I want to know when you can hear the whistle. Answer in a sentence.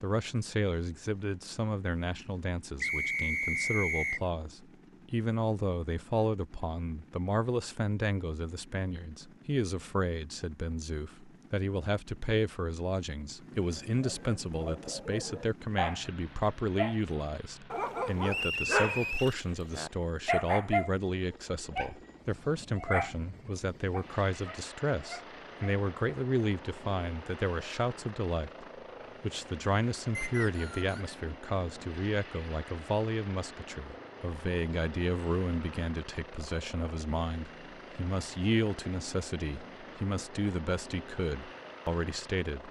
The whistle can be heard from 2.8 to 4.2 s, from 18.2 to 19.4 s and from 30.1 to 31.1 s.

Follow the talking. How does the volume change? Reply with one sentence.
The volume of the talking stays about the same.